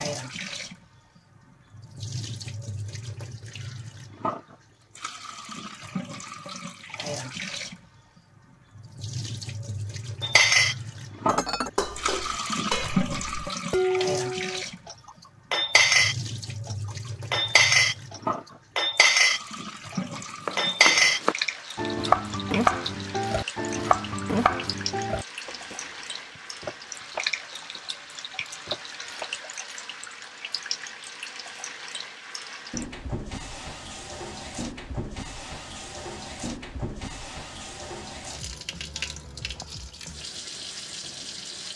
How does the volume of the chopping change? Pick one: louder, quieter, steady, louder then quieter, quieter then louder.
quieter.